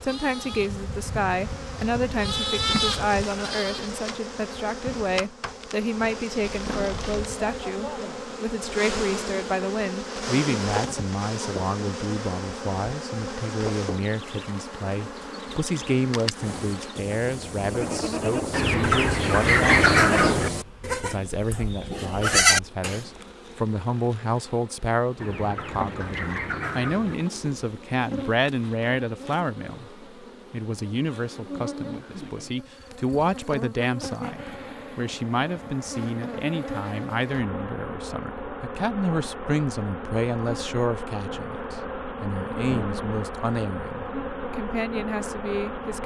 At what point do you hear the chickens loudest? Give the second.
20 s.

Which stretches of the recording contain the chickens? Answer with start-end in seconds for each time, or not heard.
18.5-20.5, 25.2-27.1.